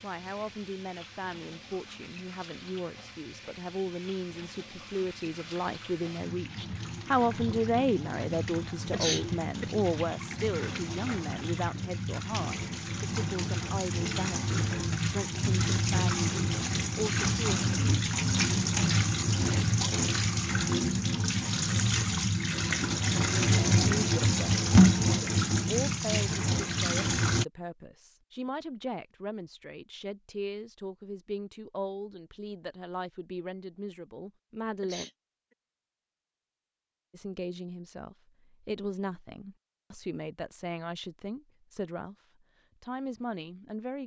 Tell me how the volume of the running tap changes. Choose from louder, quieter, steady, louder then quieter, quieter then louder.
louder.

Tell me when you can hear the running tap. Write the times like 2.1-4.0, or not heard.
0.0-27.4.